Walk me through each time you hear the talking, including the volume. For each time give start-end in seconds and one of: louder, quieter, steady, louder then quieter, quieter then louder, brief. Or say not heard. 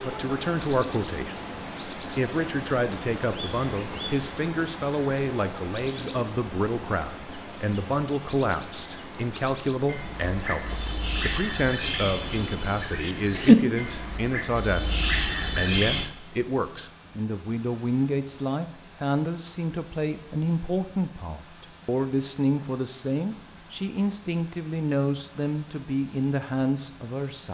0.0-27.4 steady.